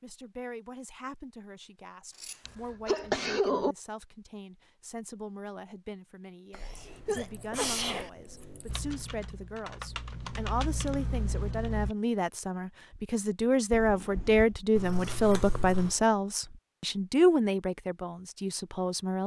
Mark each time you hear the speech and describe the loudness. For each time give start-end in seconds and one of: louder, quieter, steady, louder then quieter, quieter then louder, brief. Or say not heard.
0.0-19.2 louder.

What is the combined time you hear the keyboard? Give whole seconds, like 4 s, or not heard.
3 s.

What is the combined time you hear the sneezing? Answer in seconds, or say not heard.
4 s.